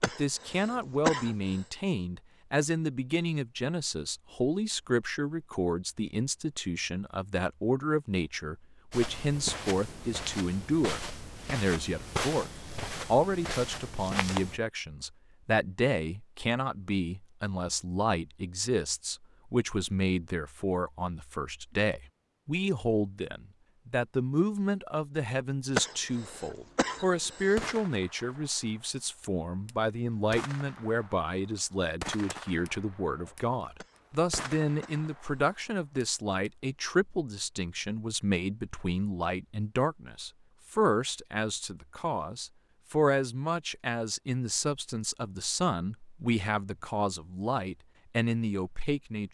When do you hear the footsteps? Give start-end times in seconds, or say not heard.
8.9-14.6.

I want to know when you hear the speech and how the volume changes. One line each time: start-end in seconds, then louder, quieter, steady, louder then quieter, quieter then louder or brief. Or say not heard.
0.0-49.2 steady.